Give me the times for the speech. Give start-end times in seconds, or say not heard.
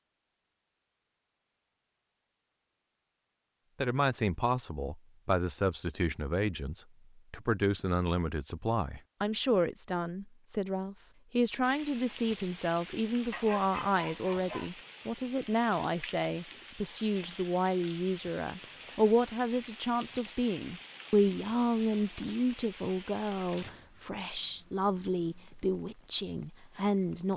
3.8-27.3.